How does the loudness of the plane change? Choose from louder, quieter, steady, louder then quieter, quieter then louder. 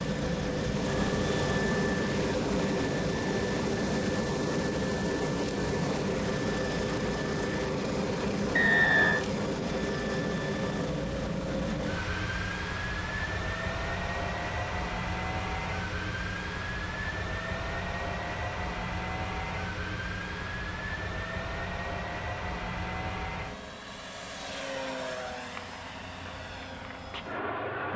quieter.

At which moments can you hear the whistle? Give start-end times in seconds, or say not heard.
8.5-9.2.